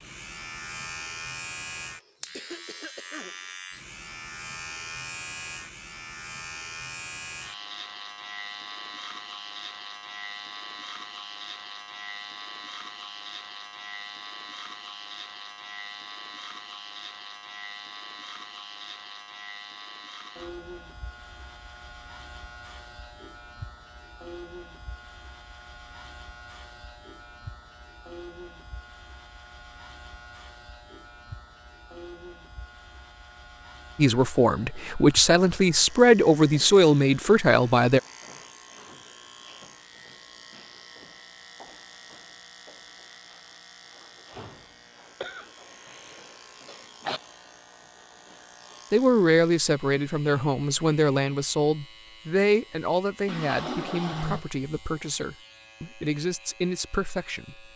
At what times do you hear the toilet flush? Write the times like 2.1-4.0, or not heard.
53.2-54.5.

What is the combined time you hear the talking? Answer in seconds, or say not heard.
13 s.